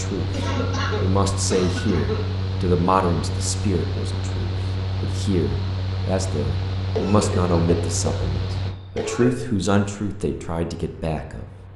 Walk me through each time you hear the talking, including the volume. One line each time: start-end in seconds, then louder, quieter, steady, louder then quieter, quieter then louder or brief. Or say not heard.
0.0-11.4 steady.